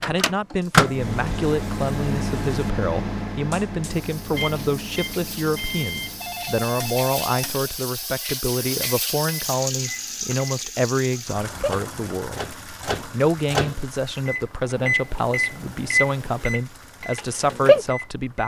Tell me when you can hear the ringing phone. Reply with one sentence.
The ringing phone can be heard from 6.2 to 7.5 s.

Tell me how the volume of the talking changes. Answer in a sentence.
The loudness of the talking stays about the same.